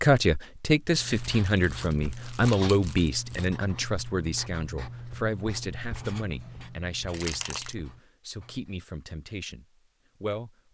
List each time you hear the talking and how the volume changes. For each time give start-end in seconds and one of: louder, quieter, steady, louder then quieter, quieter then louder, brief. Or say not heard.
0.0-10.7 quieter.